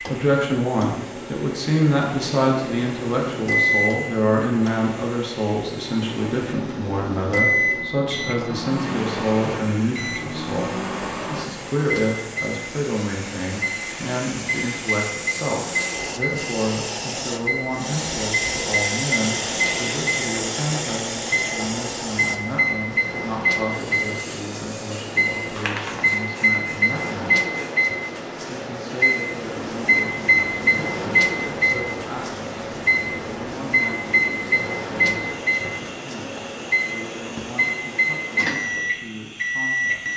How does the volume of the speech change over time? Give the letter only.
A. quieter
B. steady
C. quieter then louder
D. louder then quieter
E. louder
A.